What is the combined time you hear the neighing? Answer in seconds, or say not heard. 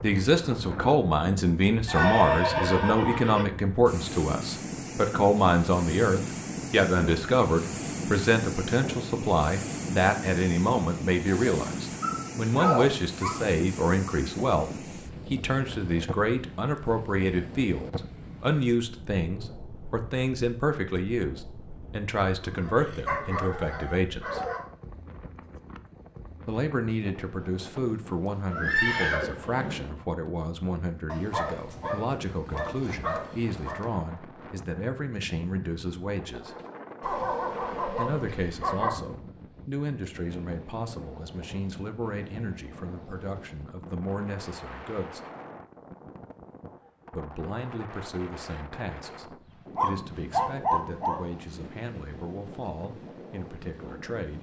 3 s.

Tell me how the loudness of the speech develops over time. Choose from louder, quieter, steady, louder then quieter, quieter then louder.
quieter.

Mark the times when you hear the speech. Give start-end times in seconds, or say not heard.
0.0-24.4, 26.4-36.5, 38.0-45.2, 47.1-54.3.